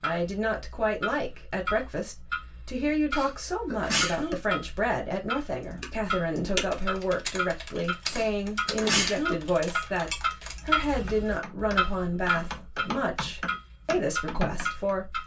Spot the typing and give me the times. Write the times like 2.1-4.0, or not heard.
5.6-14.9.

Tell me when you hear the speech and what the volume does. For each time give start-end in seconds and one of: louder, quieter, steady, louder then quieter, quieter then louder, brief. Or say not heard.
0.0-15.2 steady.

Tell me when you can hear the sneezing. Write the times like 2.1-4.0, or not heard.
3.1-4.3, 8.1-9.3.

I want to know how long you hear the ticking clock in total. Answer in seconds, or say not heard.
15 s.